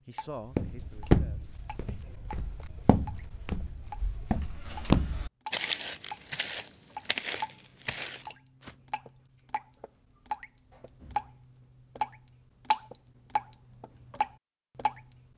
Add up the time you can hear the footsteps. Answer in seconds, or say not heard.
8 s.